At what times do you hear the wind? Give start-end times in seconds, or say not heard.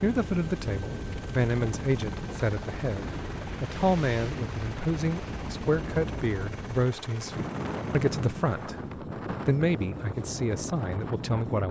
0.0-11.6.